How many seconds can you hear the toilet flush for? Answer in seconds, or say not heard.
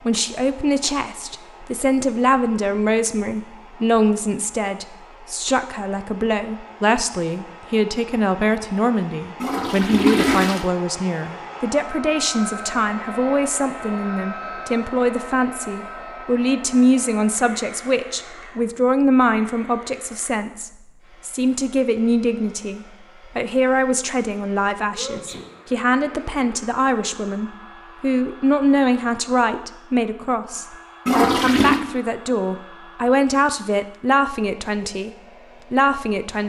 2 s.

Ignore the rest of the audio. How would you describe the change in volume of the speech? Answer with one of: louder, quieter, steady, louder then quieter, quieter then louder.
steady.